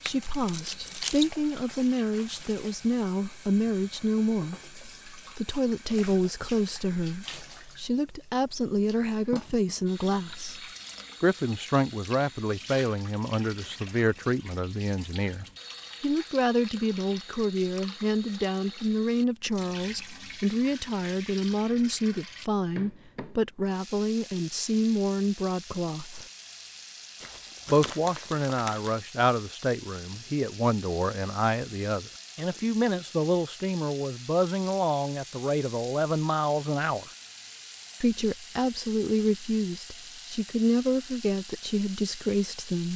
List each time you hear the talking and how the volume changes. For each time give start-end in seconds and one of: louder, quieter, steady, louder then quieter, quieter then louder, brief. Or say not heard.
0.0-26.2 steady
27.7-37.1 steady
38.0-42.9 steady.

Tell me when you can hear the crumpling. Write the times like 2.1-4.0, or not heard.
0.1-1.4, 27.2-28.9.